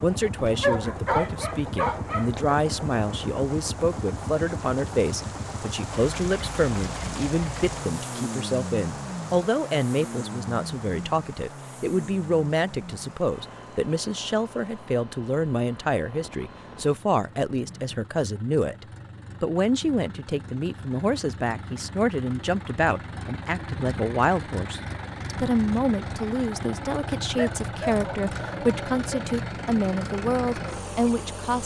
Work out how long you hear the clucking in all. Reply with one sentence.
You can't hear the clucking here.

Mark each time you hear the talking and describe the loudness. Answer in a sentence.
The talking can be heard from 0.0 to 31.6 s, at a steady volume.